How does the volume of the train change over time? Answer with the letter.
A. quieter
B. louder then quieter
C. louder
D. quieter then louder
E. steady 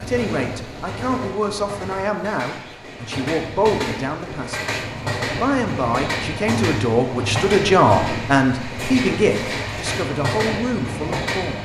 C.